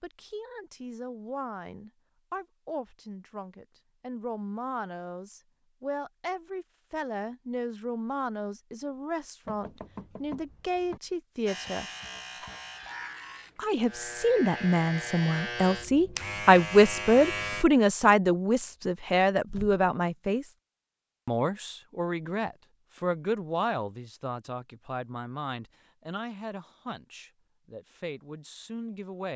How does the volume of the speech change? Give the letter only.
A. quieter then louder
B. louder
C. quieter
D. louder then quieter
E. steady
D.